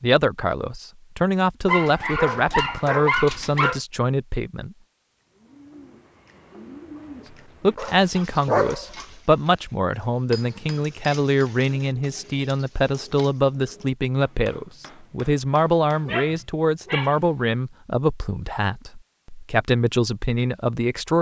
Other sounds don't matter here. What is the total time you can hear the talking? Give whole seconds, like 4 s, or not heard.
18 s.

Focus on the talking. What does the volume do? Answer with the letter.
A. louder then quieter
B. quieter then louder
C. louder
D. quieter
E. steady
E.